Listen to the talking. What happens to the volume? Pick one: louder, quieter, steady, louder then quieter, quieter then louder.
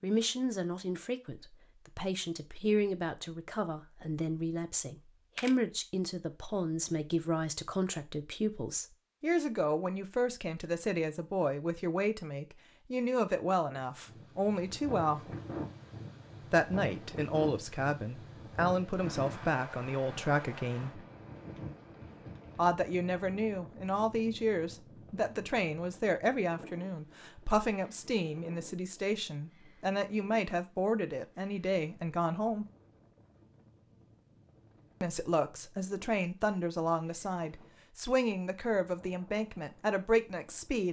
steady.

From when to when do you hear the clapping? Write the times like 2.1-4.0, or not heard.
not heard.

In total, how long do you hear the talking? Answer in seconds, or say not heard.
36 s.